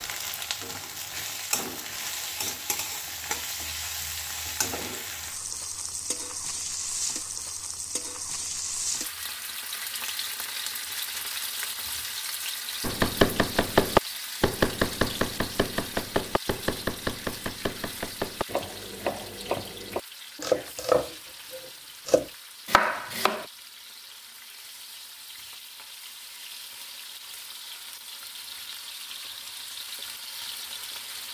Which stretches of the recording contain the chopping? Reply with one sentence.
You can hear the chopping from 12.8 to 23.4 s.